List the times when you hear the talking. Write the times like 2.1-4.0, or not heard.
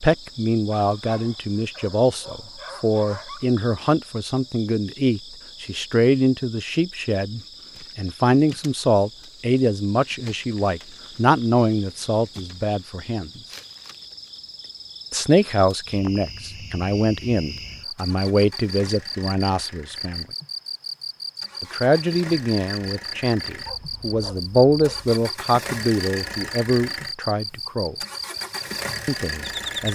0.0-13.4, 15.1-20.2, 21.6-27.9, 29.1-29.9.